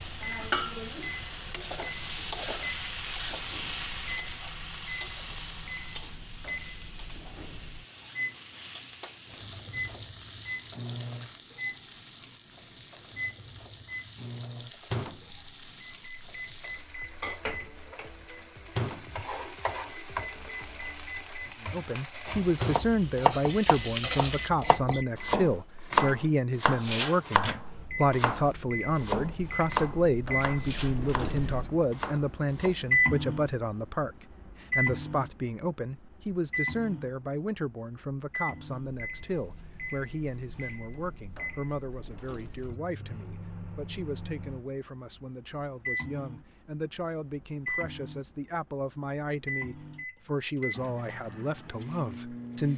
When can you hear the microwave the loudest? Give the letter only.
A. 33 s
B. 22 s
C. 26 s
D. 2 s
A.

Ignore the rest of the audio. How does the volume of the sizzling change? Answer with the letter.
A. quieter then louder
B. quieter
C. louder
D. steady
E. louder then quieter
A.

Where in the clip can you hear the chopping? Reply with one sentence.
You can hear the chopping from 22.2 to 32.8 s.